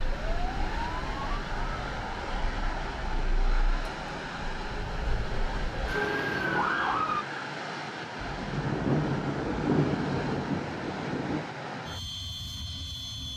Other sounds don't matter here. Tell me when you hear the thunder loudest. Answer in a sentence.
The volume of the thunder peaks at 10 seconds.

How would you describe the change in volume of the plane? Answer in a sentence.
The volume of the plane stays about the same.